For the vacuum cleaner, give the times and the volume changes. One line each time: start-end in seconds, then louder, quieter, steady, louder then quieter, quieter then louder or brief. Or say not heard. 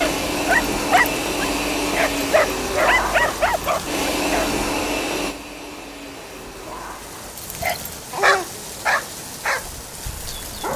0.0-7.3 quieter.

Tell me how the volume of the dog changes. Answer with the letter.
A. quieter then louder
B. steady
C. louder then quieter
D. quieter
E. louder
D.